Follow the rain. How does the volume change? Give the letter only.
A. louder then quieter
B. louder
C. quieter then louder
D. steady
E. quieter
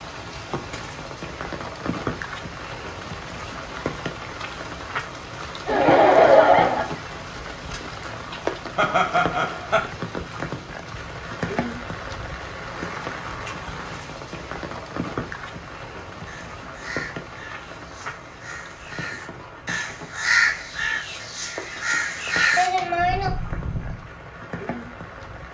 E.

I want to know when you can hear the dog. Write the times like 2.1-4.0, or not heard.
not heard.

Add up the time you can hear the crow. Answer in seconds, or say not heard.
8 s.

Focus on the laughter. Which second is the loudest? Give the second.
6 s.